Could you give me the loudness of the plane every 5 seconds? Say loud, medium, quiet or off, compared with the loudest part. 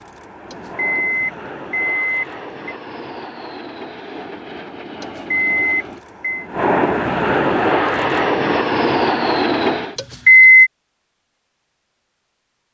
quiet, loud, off.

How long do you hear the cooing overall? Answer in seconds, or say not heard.
not heard.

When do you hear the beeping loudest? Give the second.
10 s.